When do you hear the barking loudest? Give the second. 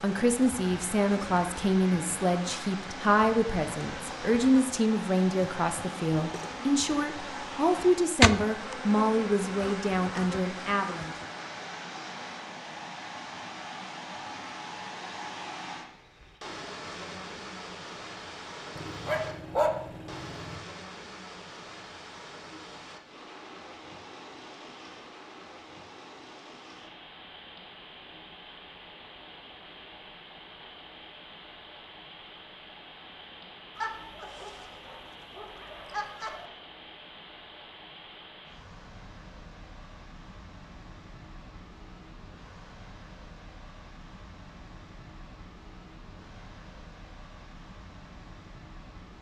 20 s.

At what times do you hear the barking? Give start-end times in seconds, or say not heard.
18.8-20.6, 33.8-36.5.